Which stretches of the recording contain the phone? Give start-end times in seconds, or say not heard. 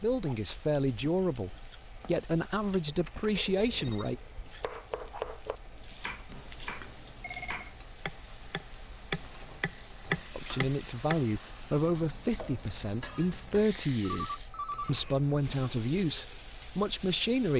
3.0-4.1, 6.3-7.7, 14.2-14.9.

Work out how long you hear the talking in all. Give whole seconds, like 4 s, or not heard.
11 s.